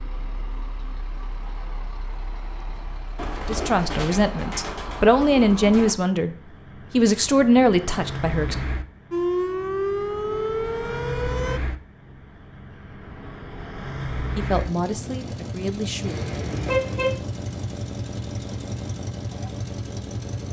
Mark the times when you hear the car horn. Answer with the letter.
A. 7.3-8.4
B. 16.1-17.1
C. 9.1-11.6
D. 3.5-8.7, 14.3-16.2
B.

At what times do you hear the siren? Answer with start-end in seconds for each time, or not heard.
9.1-11.6.